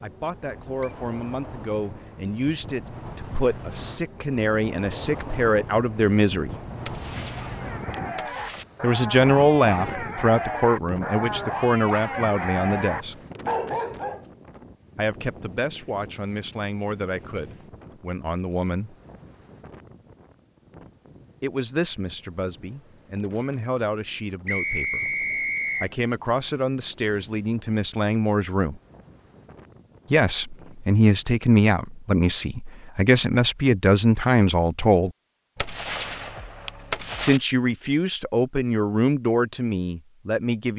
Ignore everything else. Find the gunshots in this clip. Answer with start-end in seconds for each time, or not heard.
6.8-8.7, 35.5-37.4.